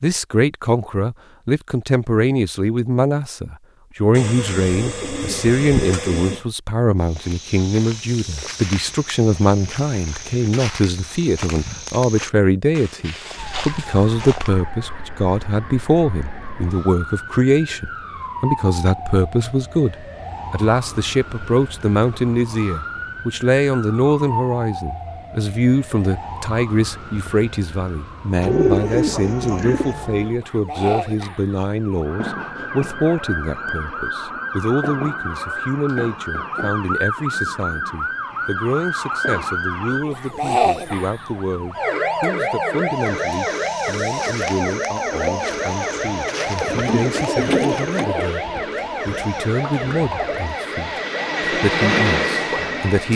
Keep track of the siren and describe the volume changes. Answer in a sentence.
The loudness of the siren goes up.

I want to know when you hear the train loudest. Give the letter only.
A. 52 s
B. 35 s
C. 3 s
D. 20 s
A.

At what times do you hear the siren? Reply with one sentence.
The siren can be heard from 13.3 to 53.1 s.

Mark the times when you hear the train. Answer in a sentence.
The train can be heard from 45.4 to 53.1 s.